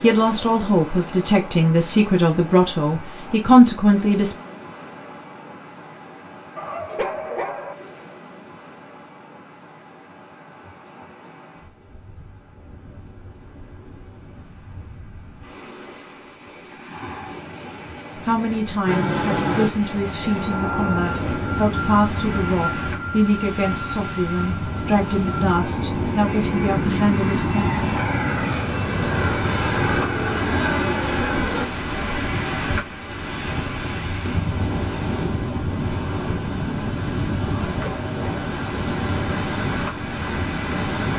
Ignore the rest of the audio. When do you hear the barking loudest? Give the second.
7 s.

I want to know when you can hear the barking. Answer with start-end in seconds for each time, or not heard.
6.5-7.8, 37.6-38.5.